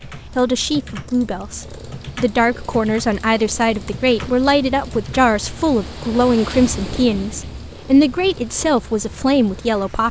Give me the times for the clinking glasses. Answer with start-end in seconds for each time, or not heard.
not heard.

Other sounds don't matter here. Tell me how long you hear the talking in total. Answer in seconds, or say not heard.
10 s.